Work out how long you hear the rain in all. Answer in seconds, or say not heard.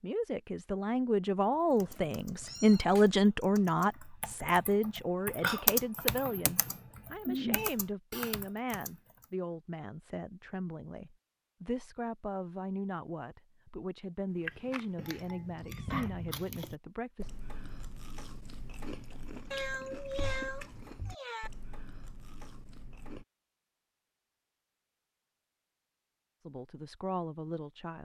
not heard.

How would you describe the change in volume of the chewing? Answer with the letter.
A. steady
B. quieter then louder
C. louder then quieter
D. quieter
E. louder
D.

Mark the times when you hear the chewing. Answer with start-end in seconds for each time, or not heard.
14.4-23.2.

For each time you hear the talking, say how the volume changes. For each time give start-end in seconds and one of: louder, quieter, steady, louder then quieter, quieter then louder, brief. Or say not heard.
0.0-17.3 quieter
26.4-27.9 brief.